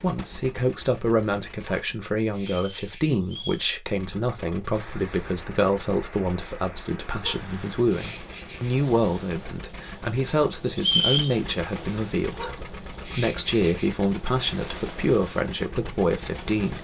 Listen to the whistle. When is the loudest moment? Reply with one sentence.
The loudest moment of the whistle is at 11 seconds.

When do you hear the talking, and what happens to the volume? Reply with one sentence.
The talking can be heard from 0.0 to 16.7 s, at a steady volume.